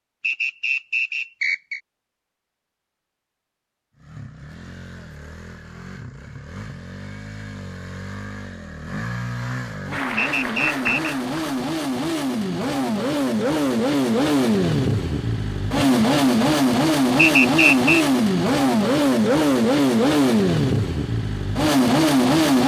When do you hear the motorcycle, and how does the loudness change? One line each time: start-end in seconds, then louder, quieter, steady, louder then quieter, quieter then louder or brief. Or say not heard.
4.0-22.6 louder.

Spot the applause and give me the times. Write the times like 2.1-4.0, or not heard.
9.9-11.6.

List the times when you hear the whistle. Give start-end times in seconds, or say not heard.
0.2-1.8, 10.2-11.2, 17.1-18.1.